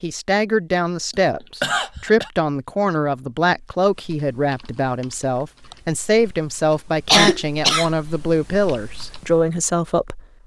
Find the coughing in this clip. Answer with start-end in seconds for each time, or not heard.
1.1-2.3, 7.0-7.9.